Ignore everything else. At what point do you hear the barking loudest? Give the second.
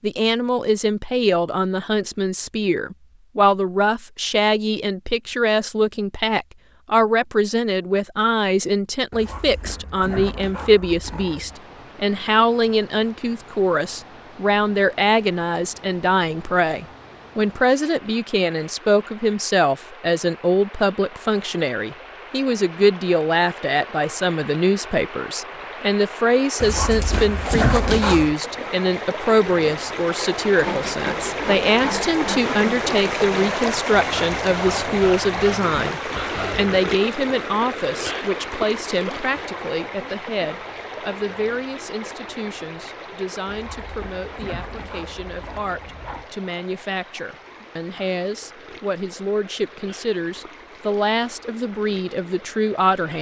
28 s.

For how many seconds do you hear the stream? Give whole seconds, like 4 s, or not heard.
42 s.